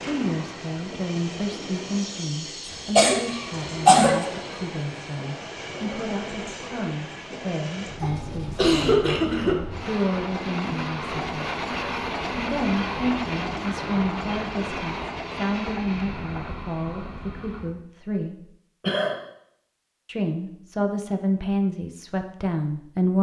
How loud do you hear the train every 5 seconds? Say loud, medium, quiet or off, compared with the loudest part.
medium, medium, loud, medium, off.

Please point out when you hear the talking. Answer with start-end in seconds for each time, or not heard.
0.0-11.4, 12.3-18.5, 20.1-23.1.